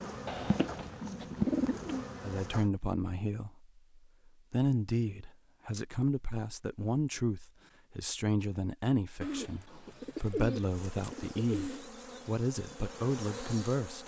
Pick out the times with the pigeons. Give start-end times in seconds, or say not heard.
0.2-2.0, 9.2-11.8.